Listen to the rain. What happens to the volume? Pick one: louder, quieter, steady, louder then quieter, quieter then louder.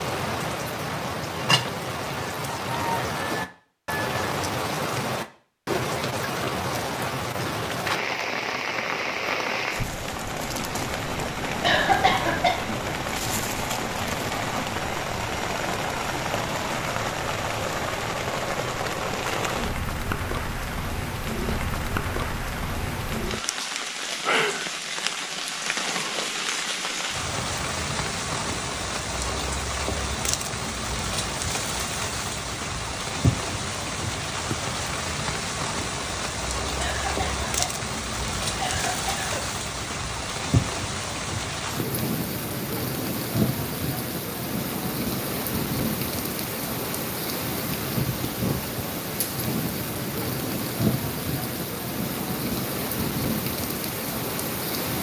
steady.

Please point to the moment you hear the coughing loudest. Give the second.
12 s.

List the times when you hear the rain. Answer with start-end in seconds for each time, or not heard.
0.0-54.9.